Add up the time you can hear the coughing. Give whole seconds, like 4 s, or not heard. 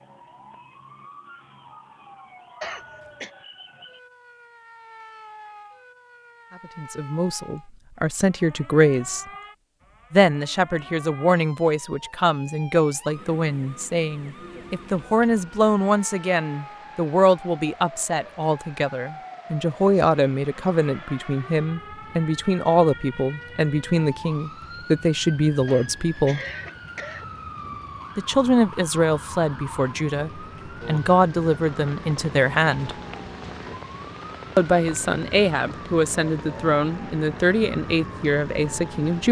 2 s.